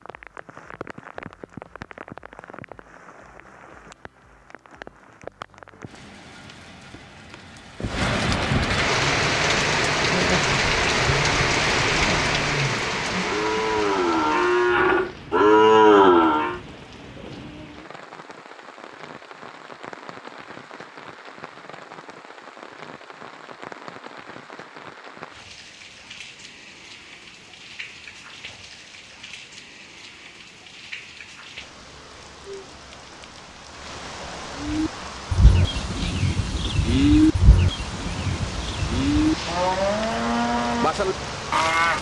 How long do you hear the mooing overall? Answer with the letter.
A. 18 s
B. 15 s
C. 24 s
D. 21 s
B.